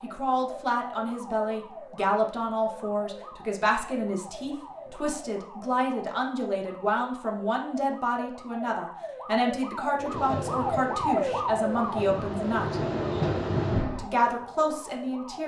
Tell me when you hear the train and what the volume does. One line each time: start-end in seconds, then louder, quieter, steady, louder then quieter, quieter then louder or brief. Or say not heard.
9.9-14.1 quieter then louder.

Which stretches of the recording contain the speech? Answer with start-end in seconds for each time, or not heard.
0.0-12.8, 13.8-15.4.